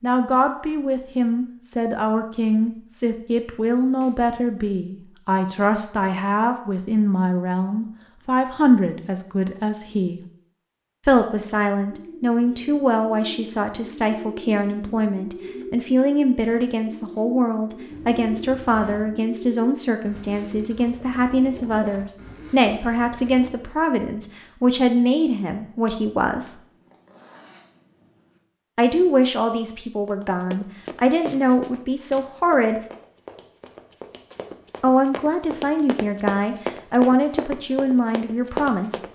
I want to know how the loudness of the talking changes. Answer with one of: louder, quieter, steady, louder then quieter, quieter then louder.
steady.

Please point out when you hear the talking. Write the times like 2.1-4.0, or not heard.
0.0-10.2, 11.1-26.6, 28.8-32.8, 34.8-39.0.